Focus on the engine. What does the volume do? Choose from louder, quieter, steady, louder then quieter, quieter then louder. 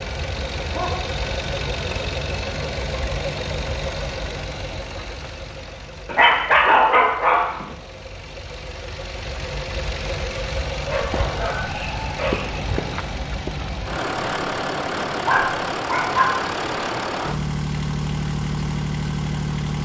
quieter then louder.